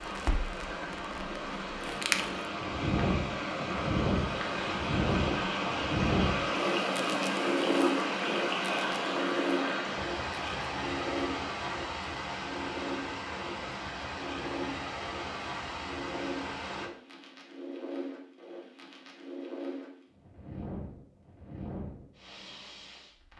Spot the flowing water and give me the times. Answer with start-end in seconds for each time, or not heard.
0.0-16.9.